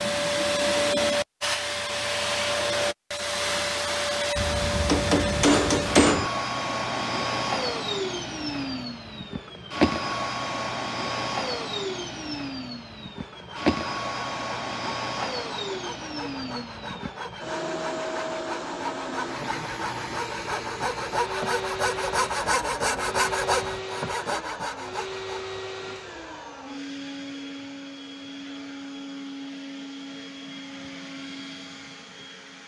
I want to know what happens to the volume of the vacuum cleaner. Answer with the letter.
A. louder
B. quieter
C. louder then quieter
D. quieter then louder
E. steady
B.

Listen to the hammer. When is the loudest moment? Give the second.
6 s.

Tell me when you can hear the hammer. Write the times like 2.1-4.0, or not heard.
4.3-6.3.